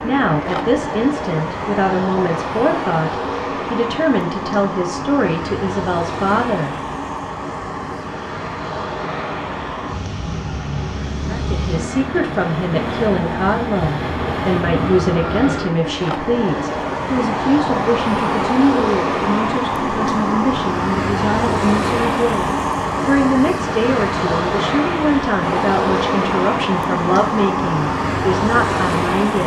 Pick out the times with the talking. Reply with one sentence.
The talking can be heard from 0.0 to 6.8 s and from 11.2 to 29.4 s.